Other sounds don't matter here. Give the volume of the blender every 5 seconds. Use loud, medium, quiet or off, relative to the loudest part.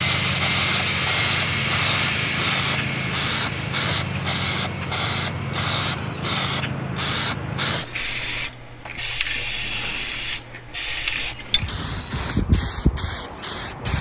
loud, quiet, quiet.